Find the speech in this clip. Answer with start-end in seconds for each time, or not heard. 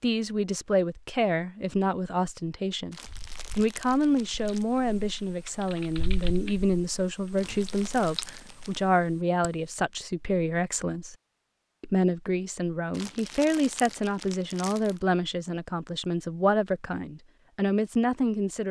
0.0-3.0, 3.5-11.2, 11.8-18.6.